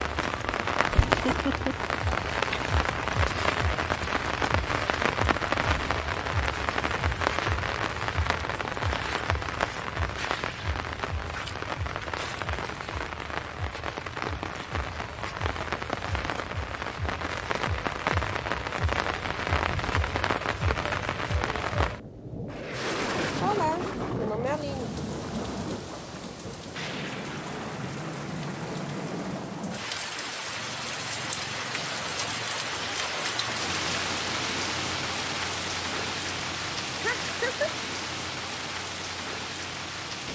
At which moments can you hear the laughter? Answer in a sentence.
You can hear the laughter from 1.2 to 1.8 s, from 23.2 to 24.9 s and from 37.0 to 37.8 s.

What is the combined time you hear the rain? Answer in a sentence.
You can hear the rain for 40 seconds altogether.